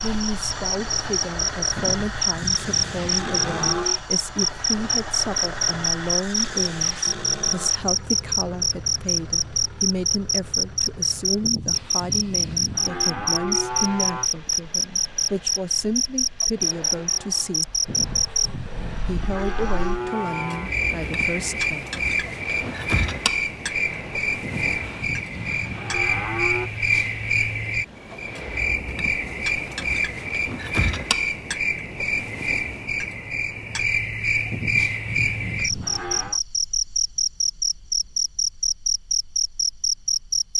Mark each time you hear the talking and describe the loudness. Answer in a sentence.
The talking can be heard from 0.0 to 17.8 s, at a steady volume; and briefly from 19.1 to 21.9 s.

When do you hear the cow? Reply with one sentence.
The cow can be heard from 1.8 to 4.0 s, from 11.4 to 14.3 s, from 17.9 to 20.7 s, from 24.4 to 26.7 s and from 34.5 to 36.4 s.